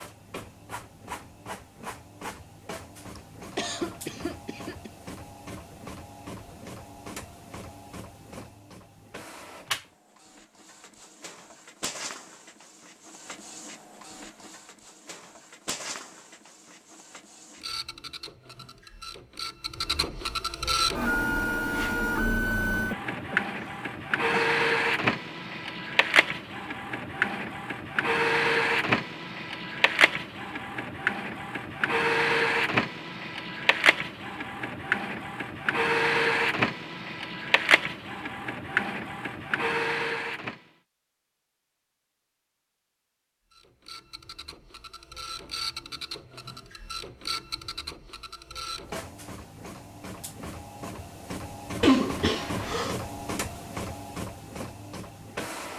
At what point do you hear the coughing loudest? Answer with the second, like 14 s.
52 s.